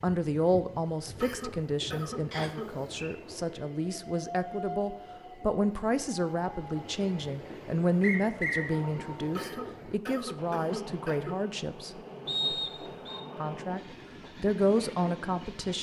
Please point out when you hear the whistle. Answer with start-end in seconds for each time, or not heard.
2.3-3.1, 8.0-8.8, 12.2-13.2.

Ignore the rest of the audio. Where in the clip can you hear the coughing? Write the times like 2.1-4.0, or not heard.
1.2-2.7, 9.3-11.3.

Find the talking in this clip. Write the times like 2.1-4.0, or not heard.
0.0-11.9, 13.3-13.8, 14.4-15.7.